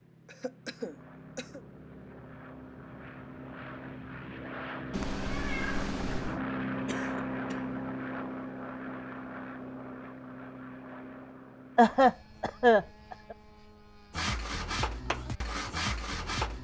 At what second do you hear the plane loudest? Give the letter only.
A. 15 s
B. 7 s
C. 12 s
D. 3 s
B.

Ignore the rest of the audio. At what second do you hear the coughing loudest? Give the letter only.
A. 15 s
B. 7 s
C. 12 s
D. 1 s
C.